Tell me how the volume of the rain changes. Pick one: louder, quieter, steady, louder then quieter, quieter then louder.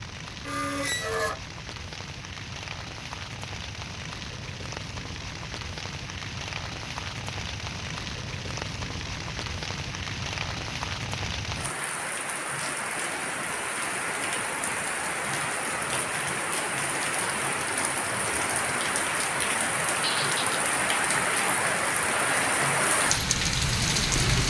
louder.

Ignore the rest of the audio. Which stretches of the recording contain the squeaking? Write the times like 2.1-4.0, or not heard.
0.4-1.4, 20.0-20.5.